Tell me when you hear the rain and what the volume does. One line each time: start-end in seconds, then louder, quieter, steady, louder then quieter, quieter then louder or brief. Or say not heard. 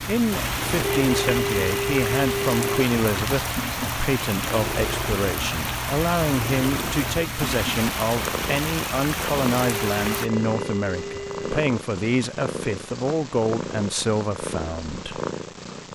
0.0-10.3 steady.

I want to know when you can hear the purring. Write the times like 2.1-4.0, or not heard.
0.0-15.8.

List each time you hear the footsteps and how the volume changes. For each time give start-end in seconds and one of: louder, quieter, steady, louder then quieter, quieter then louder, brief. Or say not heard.
not heard.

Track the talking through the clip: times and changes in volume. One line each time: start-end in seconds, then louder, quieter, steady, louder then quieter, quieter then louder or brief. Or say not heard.
0.0-15.2 steady.